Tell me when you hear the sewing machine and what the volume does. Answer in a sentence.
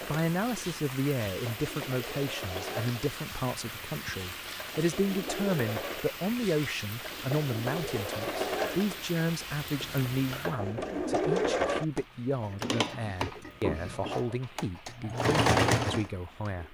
You can hear the sewing machine from 0.0 to 16.6 s, getting louder.